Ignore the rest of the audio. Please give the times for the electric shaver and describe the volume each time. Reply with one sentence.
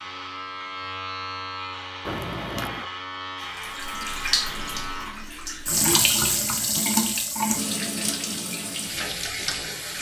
You can hear the electric shaver from 0.0 to 5.2 s, at a steady volume.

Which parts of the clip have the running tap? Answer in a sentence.
The running tap can be heard from 3.4 to 9.9 s.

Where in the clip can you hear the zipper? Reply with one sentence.
You can hear the zipper from 2.0 to 2.9 s.